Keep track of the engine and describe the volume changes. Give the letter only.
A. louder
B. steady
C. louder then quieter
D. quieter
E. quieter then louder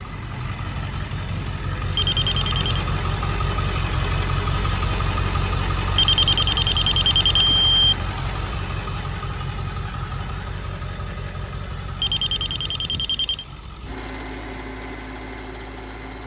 D.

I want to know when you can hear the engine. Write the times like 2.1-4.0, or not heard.
0.0-16.2.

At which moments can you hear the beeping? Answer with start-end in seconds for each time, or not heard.
1.9-2.6, 6.0-7.9, 12.0-13.4.